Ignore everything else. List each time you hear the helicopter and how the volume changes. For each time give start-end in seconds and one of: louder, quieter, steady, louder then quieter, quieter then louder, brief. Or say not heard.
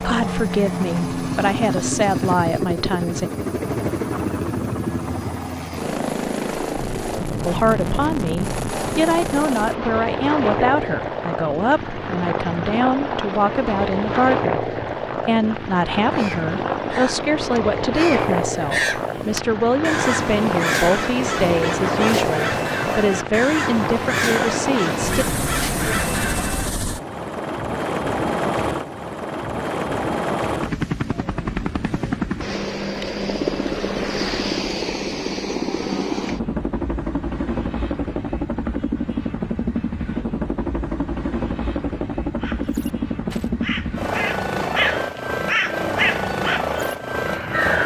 0.0-47.8 steady.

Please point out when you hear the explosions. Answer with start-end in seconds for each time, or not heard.
not heard.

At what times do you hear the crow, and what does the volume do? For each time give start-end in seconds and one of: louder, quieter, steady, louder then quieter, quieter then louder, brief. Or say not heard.
16.1-26.7 louder
42.4-47.8 louder then quieter.